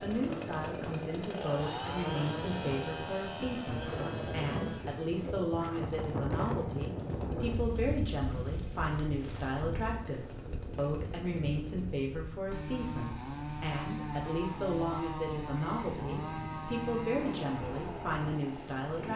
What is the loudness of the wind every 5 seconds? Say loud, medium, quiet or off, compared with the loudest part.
loud, loud, medium, medium.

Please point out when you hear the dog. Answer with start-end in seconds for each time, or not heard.
not heard.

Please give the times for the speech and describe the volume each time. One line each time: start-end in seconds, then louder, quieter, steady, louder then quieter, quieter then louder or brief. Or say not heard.
0.0-19.1 steady.